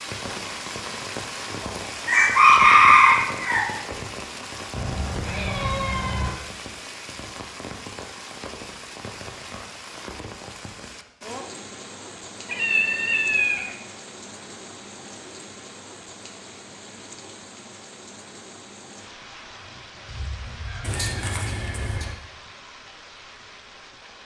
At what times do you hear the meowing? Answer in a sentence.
The meowing can be heard from 4.7 to 6.3 s, from 12.4 to 13.8 s and from 20.8 to 22.1 s.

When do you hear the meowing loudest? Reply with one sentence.
The volume of the meowing peaks at 13 seconds.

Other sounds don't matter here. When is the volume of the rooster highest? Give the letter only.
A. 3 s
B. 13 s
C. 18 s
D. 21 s
A.